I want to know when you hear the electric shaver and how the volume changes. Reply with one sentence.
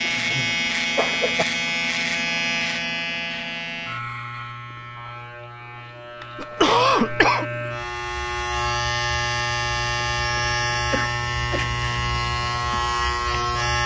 You can hear the electric shaver from 0.0 to 13.8 s, getting quieter then louder.